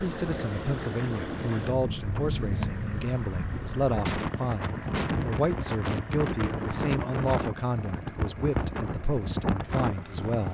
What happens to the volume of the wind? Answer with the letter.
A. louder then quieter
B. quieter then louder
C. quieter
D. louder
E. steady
E.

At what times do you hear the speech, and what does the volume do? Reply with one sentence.
You can hear the speech from 0.0 to 10.5 s, at a steady volume.